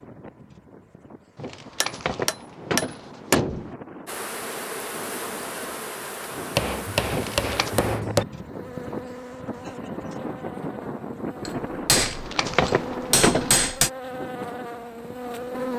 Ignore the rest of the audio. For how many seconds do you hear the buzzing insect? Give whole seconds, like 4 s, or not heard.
12 s.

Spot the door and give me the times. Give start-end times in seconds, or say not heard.
1.4-3.8, 7.1-7.7, 11.9-13.6.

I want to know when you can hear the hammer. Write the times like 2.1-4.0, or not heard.
1.8-3.4, 6.5-8.2, 11.4-13.9.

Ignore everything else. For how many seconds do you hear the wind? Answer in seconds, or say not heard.
16 s.